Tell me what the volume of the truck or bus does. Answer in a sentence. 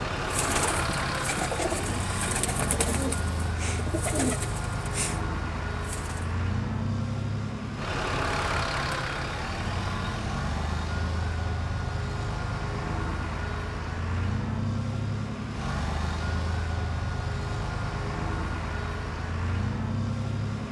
The loudness of the truck or bus stays about the same.